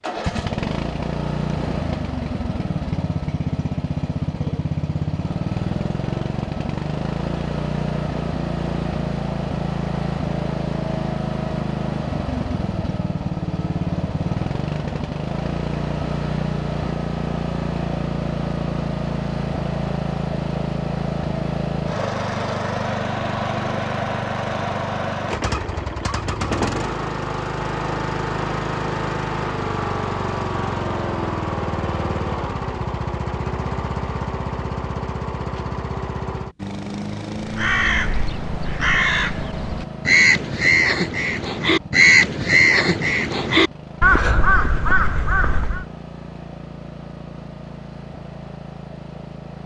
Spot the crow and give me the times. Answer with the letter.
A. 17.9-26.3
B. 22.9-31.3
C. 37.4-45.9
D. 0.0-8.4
C.